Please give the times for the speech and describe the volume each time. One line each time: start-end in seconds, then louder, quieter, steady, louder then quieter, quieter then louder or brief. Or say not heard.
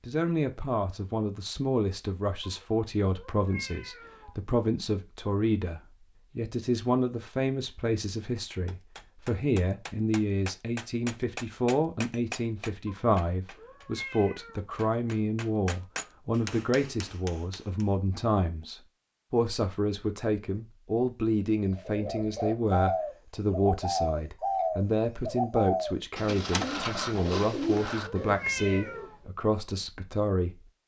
0.1-30.6 steady.